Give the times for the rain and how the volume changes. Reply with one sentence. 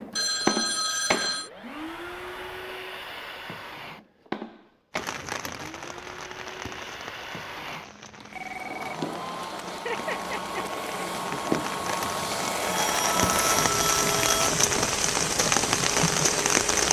The rain can be heard from 4.9 to 16.8 s, getting quieter then louder.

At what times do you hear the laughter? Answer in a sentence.
The laughter can be heard from 9.7 to 10.8 s.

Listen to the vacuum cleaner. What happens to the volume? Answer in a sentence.
The volume of the vacuum cleaner goes down, then up.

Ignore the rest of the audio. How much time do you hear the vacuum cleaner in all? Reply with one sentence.
The vacuum cleaner can be heard for 17 seconds in total.